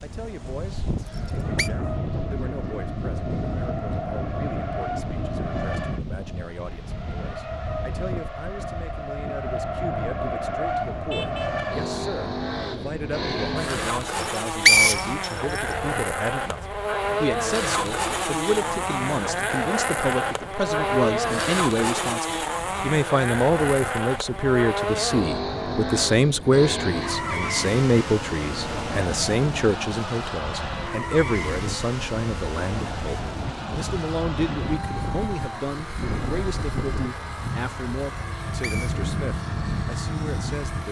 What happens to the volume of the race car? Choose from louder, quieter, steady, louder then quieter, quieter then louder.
louder then quieter.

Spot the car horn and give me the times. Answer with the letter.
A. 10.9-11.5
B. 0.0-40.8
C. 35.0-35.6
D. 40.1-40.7
A.